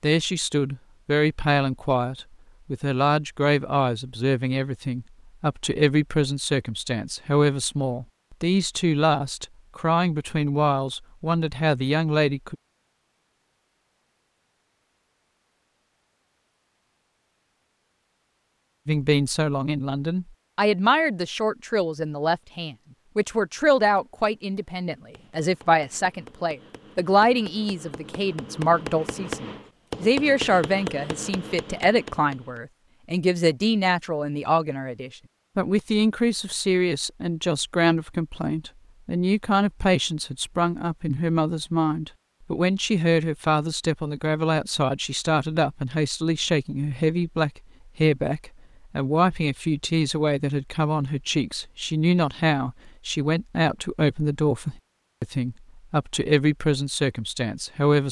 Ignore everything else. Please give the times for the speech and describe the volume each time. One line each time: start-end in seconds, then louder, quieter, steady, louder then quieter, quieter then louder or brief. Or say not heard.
0.0-12.6 steady
18.9-58.0 steady.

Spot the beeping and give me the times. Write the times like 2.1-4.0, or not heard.
not heard.